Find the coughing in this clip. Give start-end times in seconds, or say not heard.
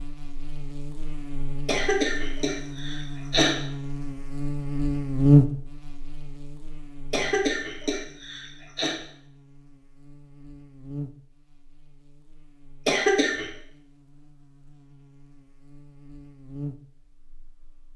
1.6-3.5, 7.1-8.9, 12.8-13.5.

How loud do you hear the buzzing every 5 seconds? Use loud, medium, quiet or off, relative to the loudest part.
medium, loud, quiet, quiet.